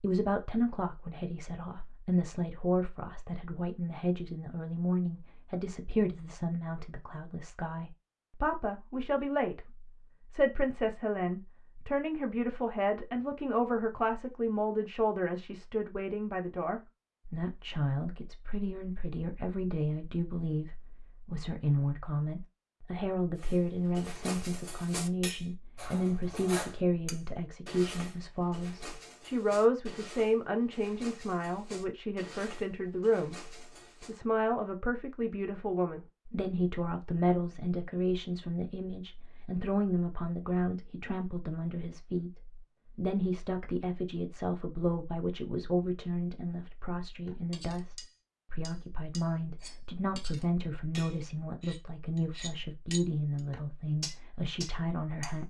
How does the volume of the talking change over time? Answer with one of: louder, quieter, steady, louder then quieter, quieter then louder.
steady.